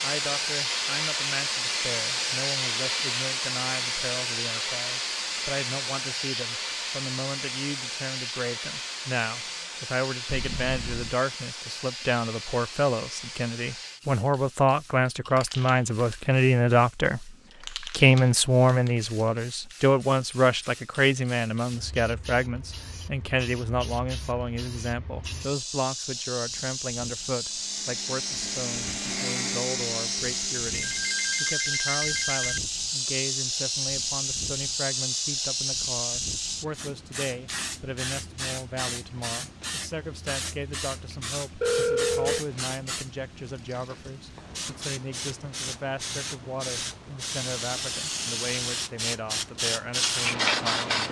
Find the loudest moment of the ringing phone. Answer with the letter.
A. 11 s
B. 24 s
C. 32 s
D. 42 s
D.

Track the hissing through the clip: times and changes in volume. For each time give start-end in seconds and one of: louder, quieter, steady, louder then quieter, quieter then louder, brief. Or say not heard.
0.0-51.0 quieter then louder.